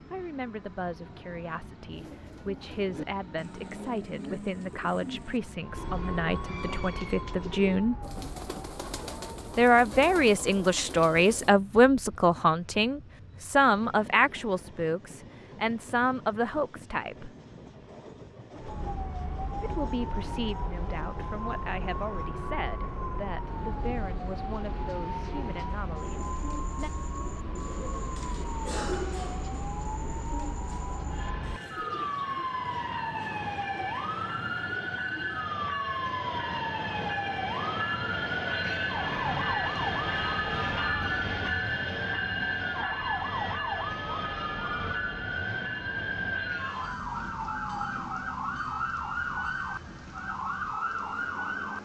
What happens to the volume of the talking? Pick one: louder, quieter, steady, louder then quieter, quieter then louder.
louder then quieter.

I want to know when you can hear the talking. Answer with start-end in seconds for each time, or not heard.
0.1-8.0, 9.6-17.3, 19.6-26.9.